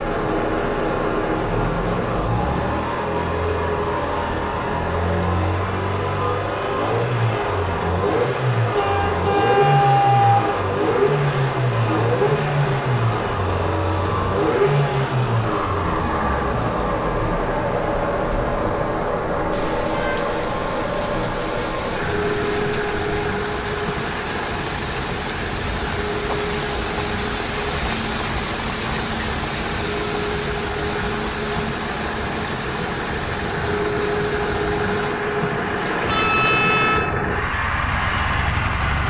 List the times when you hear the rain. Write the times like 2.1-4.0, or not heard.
10.8-39.0.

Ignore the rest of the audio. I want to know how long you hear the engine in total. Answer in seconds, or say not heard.
39 s.